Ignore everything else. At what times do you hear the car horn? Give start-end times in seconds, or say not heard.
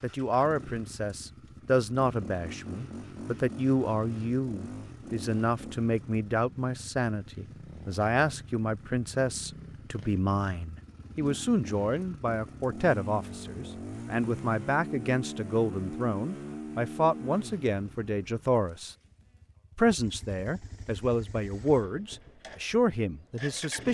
not heard.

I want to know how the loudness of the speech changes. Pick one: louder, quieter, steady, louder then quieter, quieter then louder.
steady.